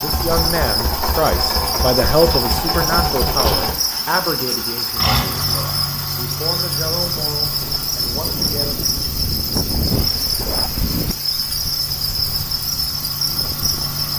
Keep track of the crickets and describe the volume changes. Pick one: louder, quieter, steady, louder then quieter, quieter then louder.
steady.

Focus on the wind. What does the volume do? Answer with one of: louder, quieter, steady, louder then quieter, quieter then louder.
louder then quieter.